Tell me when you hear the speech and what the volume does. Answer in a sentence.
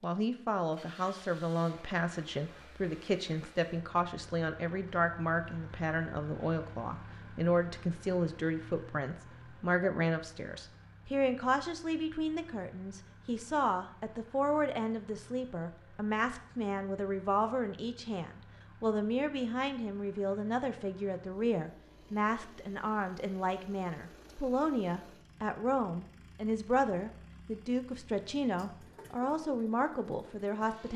You can hear the speech from 0.0 to 30.9 s, at a steady volume.